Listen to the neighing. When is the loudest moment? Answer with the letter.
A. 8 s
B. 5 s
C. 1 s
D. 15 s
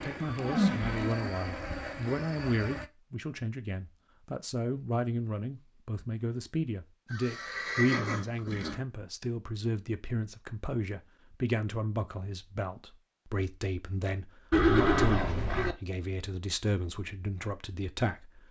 D.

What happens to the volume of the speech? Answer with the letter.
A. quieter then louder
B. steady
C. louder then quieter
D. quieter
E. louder
B.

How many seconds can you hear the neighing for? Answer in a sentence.
The neighing can be heard for 5 seconds in total.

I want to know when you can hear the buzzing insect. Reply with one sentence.
You can hear the buzzing insect from 0.0 to 2.9 s.